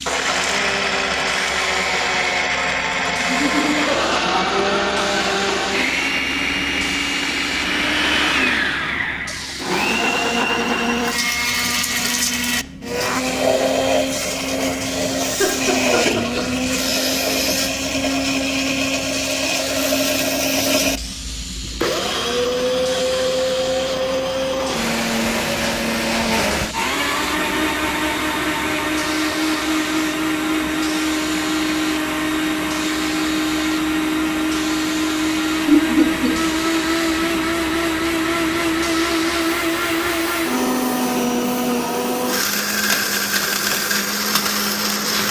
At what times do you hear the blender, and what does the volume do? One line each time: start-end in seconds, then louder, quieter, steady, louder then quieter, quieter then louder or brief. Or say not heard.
0.0-45.2 steady.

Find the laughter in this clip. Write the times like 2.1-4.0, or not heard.
3.1-5.0, 15.2-16.4, 35.6-36.3.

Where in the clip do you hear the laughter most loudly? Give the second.
36 s.